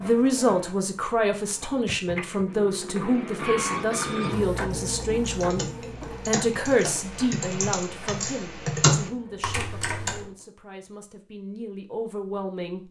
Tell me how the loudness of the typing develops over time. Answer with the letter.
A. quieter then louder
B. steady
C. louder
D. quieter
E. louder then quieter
E.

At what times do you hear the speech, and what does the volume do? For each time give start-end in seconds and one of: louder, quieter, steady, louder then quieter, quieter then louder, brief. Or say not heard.
0.0-12.8 quieter.